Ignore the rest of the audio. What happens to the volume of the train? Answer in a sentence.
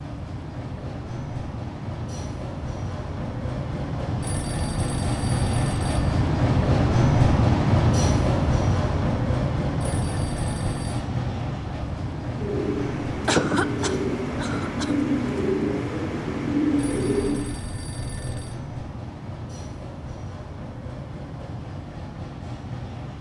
The volume of the train goes up, then down.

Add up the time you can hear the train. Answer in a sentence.
The train can be heard for 23 seconds in total.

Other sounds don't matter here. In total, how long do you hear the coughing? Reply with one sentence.
You can hear the coughing for 2 seconds altogether.